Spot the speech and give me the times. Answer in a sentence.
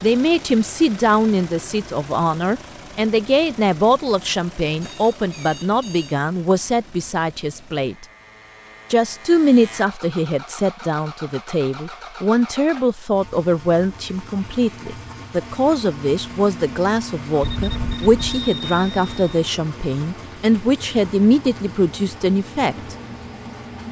You can hear the speech from 0.0 to 8.1 s and from 8.9 to 22.9 s.